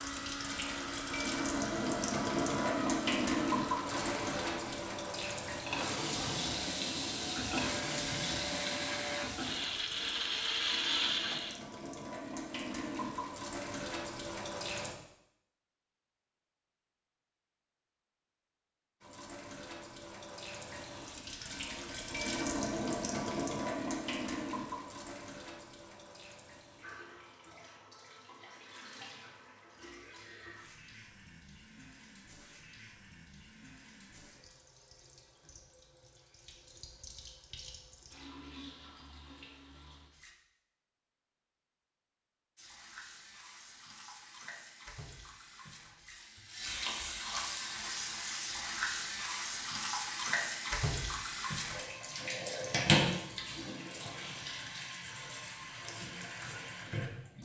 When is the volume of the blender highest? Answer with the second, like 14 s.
11 s.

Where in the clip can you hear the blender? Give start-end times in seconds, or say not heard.
0.0-11.6.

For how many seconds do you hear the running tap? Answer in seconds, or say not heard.
51 s.